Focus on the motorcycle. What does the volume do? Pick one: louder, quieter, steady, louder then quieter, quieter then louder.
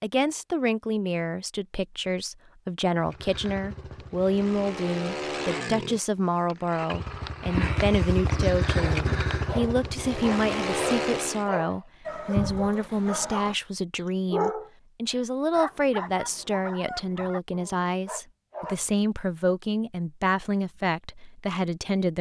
louder.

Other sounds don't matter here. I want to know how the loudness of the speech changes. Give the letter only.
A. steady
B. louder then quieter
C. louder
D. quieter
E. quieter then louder
A.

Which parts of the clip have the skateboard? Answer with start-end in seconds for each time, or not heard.
not heard.